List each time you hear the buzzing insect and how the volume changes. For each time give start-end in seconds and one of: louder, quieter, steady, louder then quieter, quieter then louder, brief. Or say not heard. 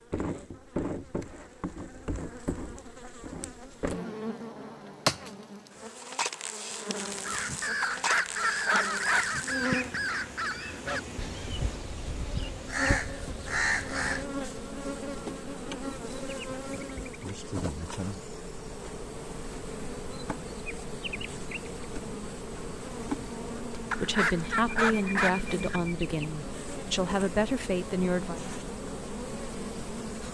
0.0-30.3 steady.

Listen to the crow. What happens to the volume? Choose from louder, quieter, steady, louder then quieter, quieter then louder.
quieter then louder.